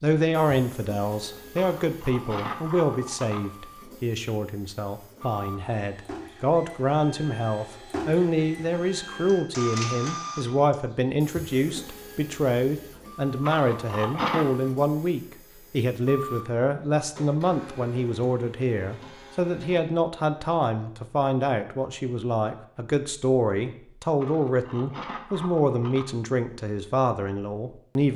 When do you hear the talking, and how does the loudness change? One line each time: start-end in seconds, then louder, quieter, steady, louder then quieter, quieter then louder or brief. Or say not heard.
0.0-28.1 steady.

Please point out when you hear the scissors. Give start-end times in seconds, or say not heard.
1.8-3.4, 13.4-14.4, 24.2-26.1.